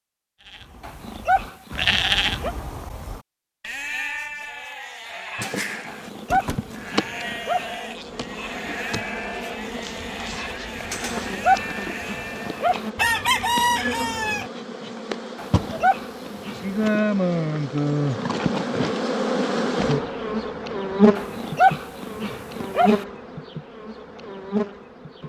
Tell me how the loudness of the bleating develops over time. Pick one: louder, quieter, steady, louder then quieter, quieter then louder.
quieter.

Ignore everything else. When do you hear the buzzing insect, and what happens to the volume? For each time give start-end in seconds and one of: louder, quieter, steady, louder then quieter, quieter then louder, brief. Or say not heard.
5.3-25.2 louder.